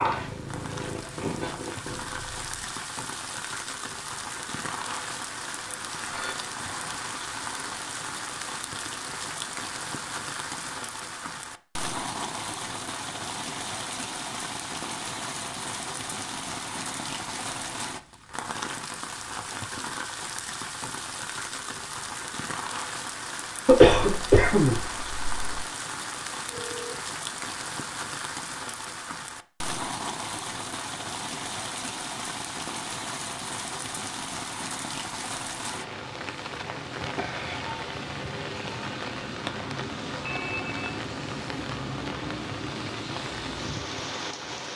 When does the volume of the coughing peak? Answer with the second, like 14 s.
24 s.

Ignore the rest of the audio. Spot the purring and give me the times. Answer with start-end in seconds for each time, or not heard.
0.0-2.8.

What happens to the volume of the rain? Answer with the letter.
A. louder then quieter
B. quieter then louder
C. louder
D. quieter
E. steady
E.